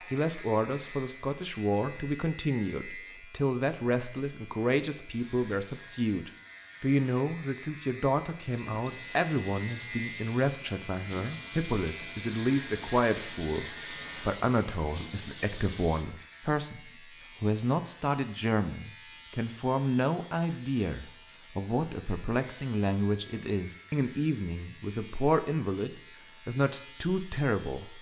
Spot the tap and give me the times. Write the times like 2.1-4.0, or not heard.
8.7-16.1.